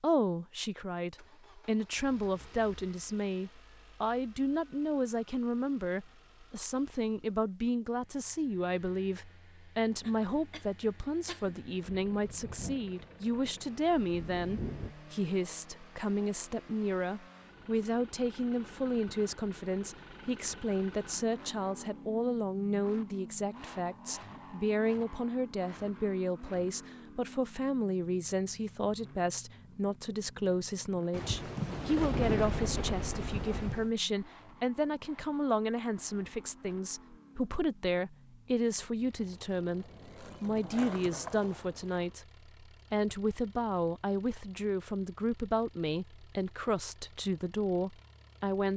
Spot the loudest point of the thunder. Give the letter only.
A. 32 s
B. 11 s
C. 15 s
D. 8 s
A.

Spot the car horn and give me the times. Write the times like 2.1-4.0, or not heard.
not heard.